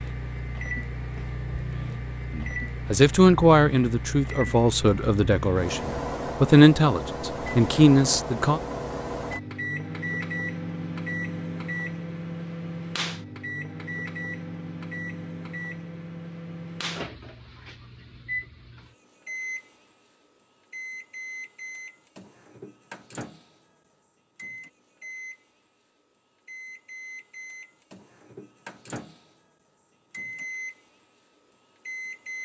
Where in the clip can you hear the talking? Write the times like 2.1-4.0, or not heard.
2.4-8.6.